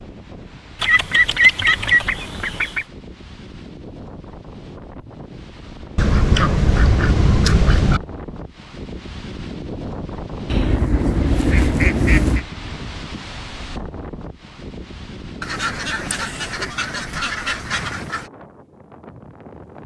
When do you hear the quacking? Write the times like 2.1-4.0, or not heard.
0.8-2.9, 6.0-8.0, 10.5-12.4, 15.4-18.2.